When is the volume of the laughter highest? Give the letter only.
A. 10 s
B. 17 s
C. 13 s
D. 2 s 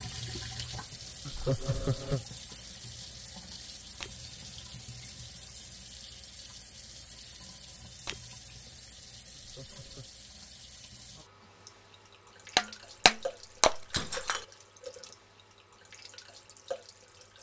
D.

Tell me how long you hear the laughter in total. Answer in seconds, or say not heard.
2 s.